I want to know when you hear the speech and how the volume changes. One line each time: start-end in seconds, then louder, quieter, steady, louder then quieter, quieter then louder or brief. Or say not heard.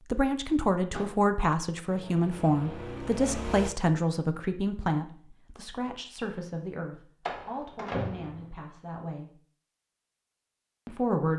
0.1-9.3 quieter
10.8-11.3 brief.